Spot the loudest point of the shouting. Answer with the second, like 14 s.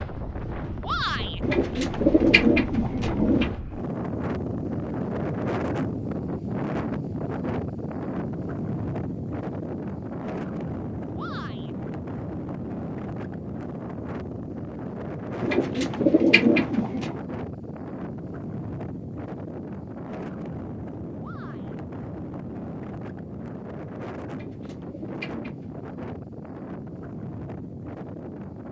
1 s.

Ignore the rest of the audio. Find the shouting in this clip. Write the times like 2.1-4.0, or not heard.
0.8-1.4, 11.2-11.8, 21.2-21.8.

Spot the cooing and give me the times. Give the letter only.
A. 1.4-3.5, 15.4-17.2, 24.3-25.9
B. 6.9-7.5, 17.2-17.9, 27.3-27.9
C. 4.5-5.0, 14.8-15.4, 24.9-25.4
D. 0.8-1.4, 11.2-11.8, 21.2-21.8
A.